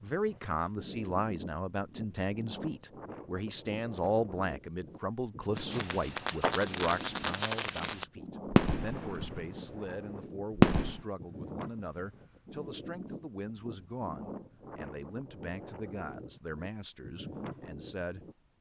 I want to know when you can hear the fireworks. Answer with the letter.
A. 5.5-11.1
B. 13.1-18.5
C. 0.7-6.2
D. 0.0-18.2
A.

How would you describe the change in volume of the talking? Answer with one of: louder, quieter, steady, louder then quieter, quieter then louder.
quieter.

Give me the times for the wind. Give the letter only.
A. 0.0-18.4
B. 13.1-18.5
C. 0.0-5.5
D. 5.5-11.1
A.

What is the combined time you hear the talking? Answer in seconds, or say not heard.
18 s.